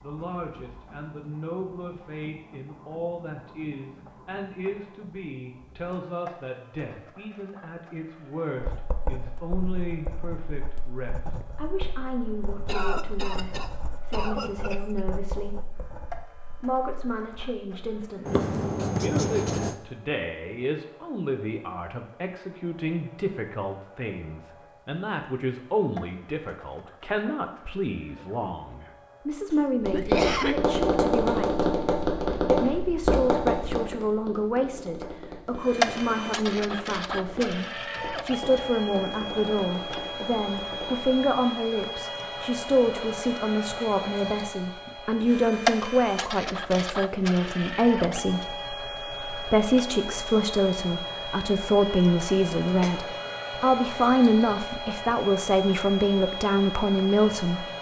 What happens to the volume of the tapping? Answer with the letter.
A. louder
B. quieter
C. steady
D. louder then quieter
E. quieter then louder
B.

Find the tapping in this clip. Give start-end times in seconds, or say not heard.
29.8-41.1.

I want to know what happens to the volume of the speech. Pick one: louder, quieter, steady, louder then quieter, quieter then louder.
louder.